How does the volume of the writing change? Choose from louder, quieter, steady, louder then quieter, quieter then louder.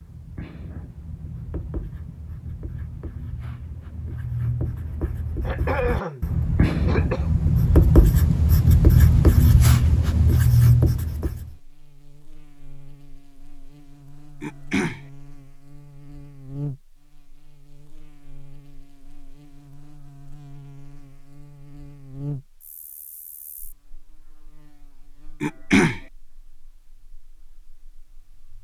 louder.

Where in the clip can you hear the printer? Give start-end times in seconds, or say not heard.
not heard.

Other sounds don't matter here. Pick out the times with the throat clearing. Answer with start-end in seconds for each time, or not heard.
5.5-7.8, 14.4-15.0, 25.4-26.0.